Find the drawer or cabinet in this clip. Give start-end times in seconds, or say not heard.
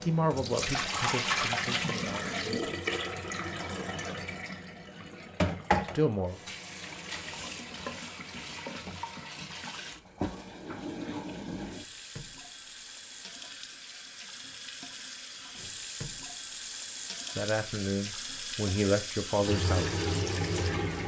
not heard.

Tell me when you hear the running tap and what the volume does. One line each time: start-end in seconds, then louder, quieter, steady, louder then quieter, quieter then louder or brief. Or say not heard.
0.0-21.0 quieter then louder.